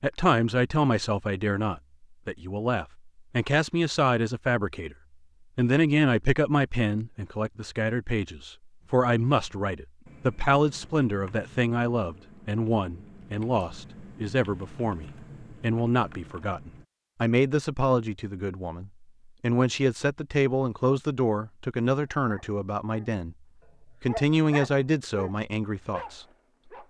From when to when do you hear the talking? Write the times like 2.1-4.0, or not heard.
0.0-5.0, 5.5-23.4, 24.0-26.2.